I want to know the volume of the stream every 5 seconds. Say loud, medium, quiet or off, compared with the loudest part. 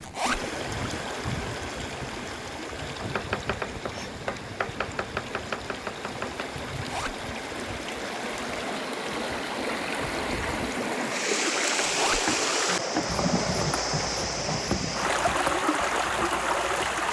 medium, medium, loud, loud.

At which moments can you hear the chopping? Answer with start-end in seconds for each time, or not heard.
3.0-6.5, 12.2-16.8.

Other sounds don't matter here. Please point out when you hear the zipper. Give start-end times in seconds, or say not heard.
0.0-0.5, 6.8-7.2, 11.8-12.2.